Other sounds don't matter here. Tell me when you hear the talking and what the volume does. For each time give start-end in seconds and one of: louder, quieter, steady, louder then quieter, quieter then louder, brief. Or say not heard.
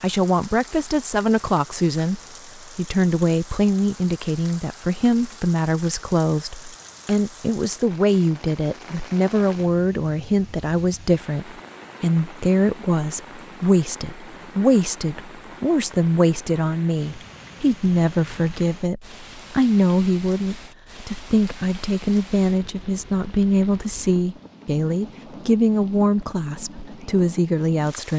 0.0-28.1 steady.